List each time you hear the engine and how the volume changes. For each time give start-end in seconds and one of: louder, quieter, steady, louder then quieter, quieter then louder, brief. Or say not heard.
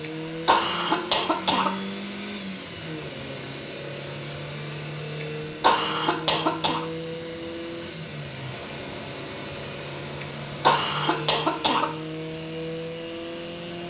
0.0-13.8 steady.